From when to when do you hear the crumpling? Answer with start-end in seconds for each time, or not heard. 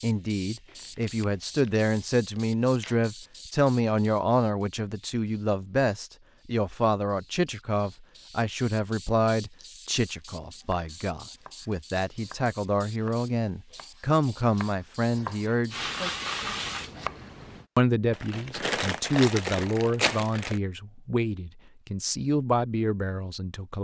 0.7-3.0, 18.1-20.6.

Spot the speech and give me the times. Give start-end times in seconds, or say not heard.
0.0-15.8, 17.8-23.8.